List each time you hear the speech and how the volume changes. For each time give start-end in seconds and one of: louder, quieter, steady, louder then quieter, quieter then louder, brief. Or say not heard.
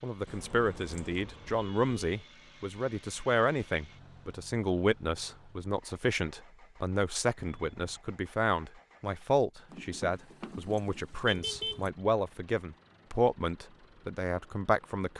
0.0-15.1 steady.